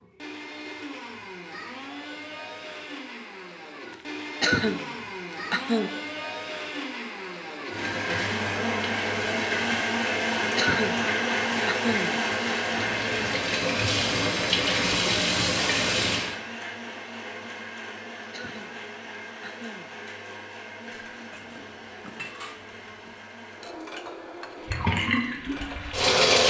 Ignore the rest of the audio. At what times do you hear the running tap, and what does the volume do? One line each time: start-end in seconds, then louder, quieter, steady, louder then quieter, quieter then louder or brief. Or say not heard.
7.7-16.4 louder
24.6-26.4 brief.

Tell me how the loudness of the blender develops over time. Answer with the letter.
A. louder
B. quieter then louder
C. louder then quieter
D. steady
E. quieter
C.